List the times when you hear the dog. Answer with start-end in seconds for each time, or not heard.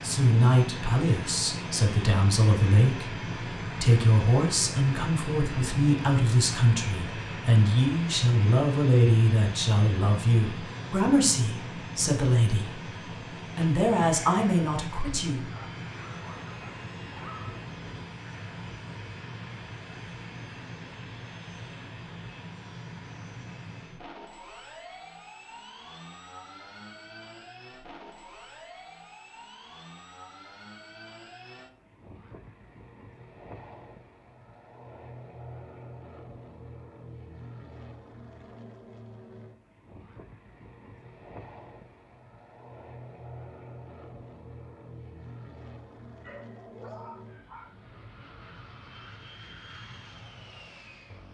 15.5-17.6, 46.2-47.8.